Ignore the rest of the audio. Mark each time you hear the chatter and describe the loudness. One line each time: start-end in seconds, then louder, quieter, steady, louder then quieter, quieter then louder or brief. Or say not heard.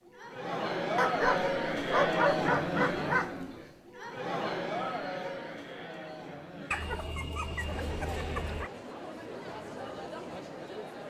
0.0-11.0 quieter.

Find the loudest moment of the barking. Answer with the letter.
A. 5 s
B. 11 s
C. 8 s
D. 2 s
D.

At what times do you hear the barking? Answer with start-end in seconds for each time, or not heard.
0.9-3.4, 6.7-8.7.